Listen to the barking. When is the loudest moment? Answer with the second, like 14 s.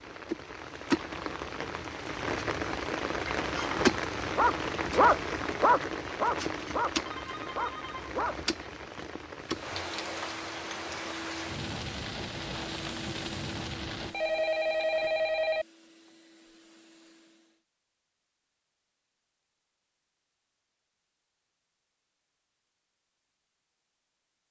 5 s.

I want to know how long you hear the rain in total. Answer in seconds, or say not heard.
14 s.